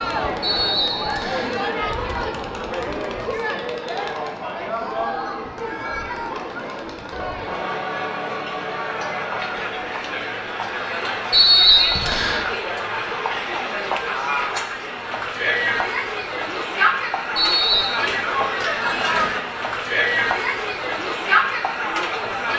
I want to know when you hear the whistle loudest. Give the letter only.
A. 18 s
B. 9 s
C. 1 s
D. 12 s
D.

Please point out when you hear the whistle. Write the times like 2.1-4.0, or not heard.
0.4-1.5, 11.3-12.4, 17.4-17.9.